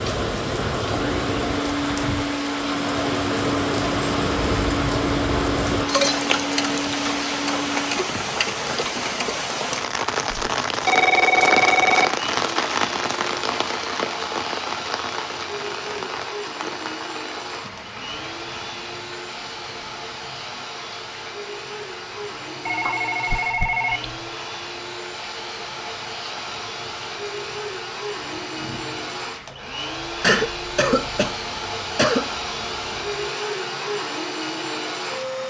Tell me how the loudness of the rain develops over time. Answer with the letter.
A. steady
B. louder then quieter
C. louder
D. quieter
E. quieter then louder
D.